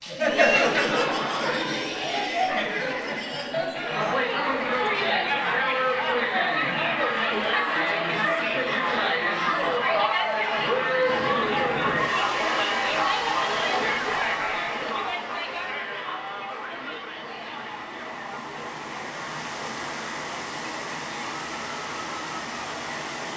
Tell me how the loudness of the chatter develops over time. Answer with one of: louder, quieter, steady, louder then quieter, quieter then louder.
quieter.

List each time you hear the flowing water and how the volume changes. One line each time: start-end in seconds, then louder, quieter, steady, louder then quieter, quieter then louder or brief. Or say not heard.
11.1-23.3 quieter then louder.